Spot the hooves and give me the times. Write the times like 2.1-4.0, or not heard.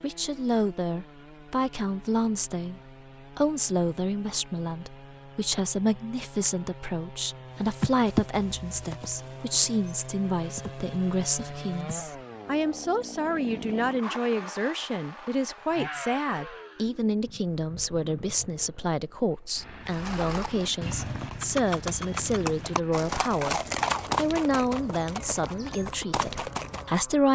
7.5-11.9, 19.9-27.0.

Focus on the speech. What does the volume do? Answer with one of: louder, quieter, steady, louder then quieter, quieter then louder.
steady.